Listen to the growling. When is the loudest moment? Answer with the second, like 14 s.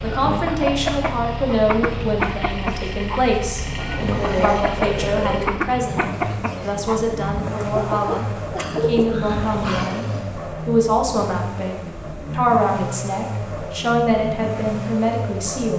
4 s.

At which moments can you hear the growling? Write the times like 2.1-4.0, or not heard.
3.6-5.5, 8.6-10.2.